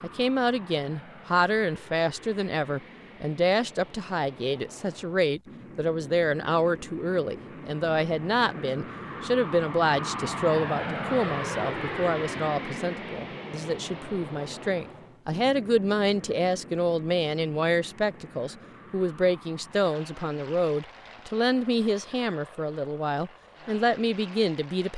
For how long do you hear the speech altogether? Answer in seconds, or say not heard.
25 s.